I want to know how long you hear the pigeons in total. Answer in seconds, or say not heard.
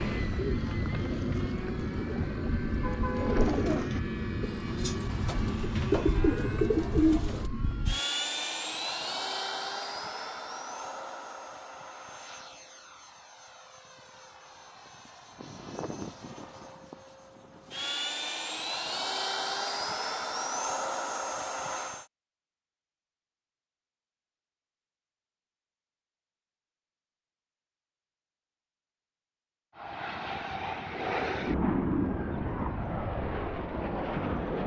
7 s.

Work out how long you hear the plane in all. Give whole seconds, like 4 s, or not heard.
27 s.